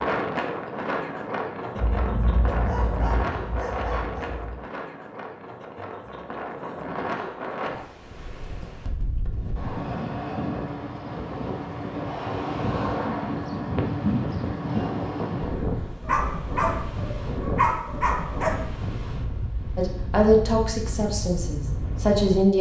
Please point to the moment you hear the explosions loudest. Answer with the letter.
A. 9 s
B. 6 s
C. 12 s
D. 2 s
D.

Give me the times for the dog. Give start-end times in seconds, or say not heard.
2.5-4.5, 16.1-18.6.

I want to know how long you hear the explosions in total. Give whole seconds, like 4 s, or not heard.
3 s.